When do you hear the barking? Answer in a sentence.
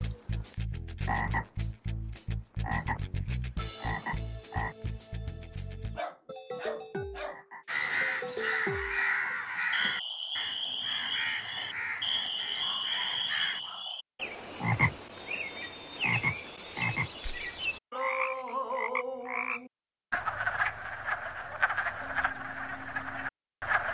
You can hear the barking from 6.0 to 7.4 s and from 12.1 to 13.9 s.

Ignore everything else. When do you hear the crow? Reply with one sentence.
The crow can be heard from 7.7 to 13.6 s.